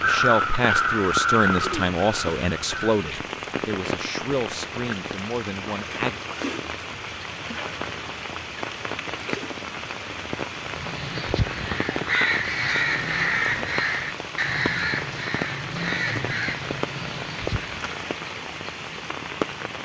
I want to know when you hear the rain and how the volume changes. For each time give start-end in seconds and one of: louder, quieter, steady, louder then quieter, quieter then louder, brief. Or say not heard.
0.0-19.8 steady.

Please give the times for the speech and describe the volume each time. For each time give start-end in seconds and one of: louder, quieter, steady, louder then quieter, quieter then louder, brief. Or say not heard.
0.0-6.2 quieter.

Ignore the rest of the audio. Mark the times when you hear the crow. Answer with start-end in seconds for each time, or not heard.
0.0-3.2, 10.6-17.9.